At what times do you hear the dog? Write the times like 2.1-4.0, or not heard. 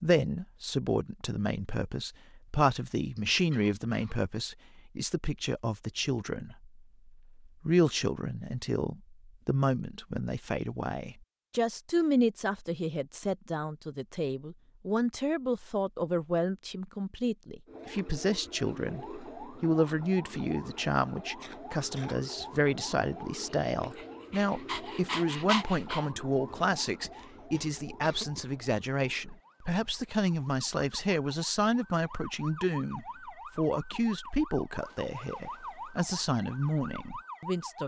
23.6-26.1.